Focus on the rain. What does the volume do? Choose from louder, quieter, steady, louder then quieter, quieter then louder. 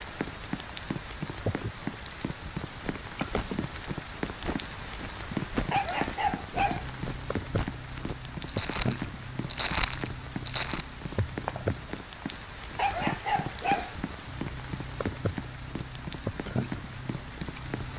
steady.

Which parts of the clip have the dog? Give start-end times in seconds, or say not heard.
5.7-6.8, 12.8-13.9.